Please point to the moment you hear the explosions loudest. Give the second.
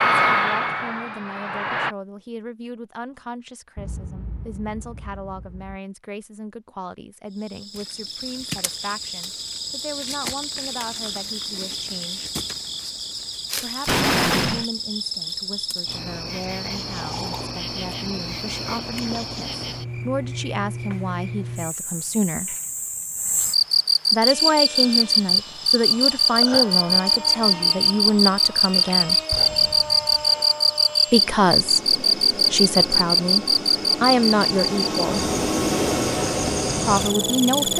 14 s.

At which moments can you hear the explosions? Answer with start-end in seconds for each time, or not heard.
3.8-5.8, 13.8-14.7, 29.3-30.2.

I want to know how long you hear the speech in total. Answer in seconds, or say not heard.
31 s.